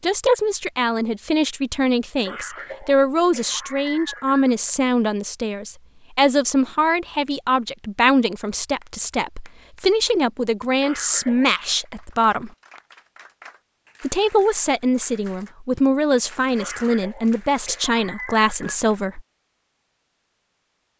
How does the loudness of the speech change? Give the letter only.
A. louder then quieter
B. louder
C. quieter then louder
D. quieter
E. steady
E.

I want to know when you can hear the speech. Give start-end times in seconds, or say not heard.
0.0-12.5, 14.0-19.2.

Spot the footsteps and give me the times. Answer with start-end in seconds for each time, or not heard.
not heard.